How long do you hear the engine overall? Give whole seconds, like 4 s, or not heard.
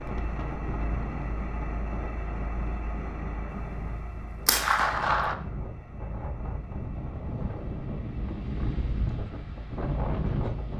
11 s.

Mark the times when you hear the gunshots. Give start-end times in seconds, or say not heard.
3.5-5.3.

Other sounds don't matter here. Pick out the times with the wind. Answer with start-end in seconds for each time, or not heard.
0.0-10.7.